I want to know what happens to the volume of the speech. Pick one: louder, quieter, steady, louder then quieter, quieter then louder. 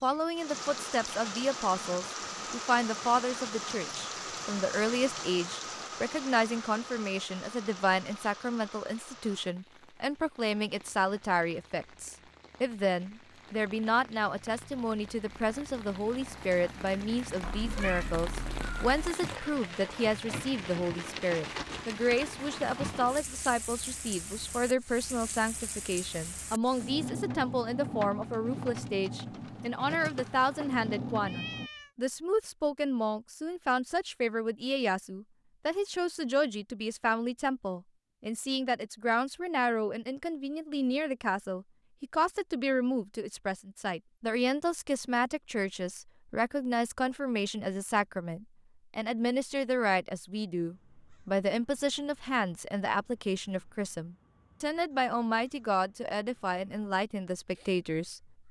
steady.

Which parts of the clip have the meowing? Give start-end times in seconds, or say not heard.
17.4-19.1, 31.2-31.9.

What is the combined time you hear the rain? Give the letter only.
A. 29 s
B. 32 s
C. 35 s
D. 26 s
B.